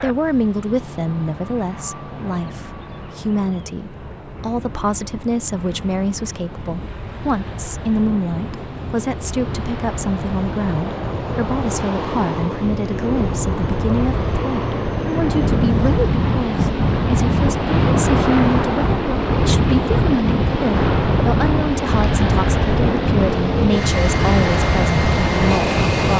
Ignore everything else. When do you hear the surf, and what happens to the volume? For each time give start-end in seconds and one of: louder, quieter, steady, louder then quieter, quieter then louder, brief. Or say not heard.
0.0-26.1 louder.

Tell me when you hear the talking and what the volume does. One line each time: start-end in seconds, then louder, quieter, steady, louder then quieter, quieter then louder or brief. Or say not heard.
0.0-26.1 steady.